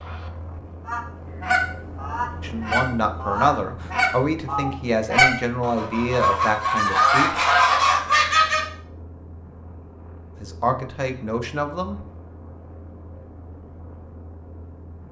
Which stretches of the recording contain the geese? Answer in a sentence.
You can hear the geese from 0.8 to 8.7 s.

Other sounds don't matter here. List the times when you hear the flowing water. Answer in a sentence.
The flowing water can't be heard in this clip.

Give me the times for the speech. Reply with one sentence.
The speech can be heard from 2.4 to 7.3 s and from 10.3 to 12.0 s.